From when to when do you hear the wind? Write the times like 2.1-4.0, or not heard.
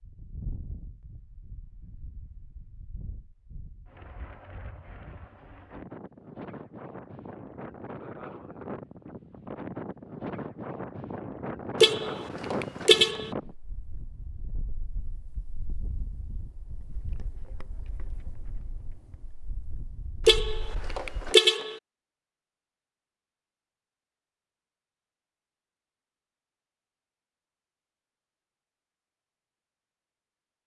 0.0-21.4.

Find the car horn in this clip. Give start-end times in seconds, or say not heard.
11.8-13.3, 20.2-21.8.